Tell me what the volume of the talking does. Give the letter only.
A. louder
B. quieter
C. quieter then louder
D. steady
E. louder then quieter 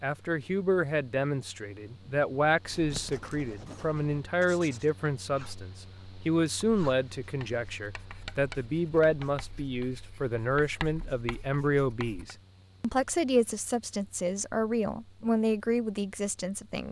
D.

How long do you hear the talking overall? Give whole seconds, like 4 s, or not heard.
17 s.